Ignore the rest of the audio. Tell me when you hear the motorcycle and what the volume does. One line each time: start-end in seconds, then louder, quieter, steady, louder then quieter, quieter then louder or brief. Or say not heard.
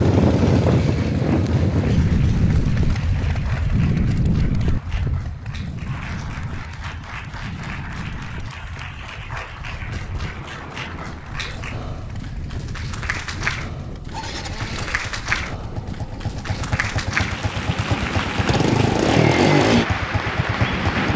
0.0-21.1 quieter then louder.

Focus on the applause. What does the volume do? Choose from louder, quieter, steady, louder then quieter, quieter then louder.
louder.